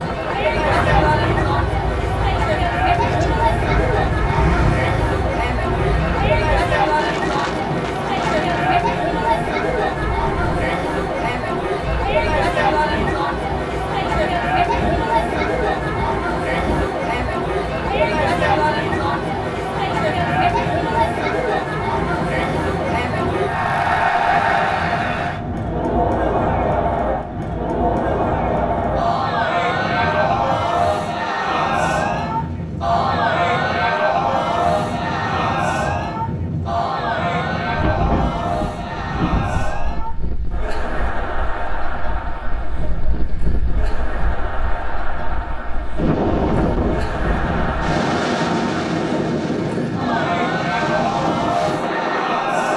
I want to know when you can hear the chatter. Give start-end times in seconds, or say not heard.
0.0-52.7.